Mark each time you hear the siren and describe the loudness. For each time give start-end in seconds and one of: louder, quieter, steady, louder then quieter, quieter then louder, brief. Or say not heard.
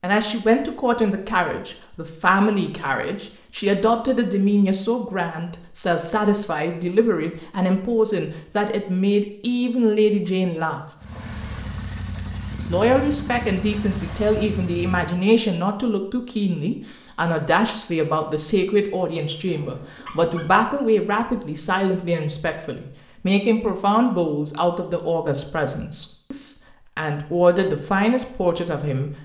not heard.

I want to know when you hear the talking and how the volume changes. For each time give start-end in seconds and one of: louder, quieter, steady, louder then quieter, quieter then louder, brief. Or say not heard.
0.0-10.8 steady
12.7-29.1 steady.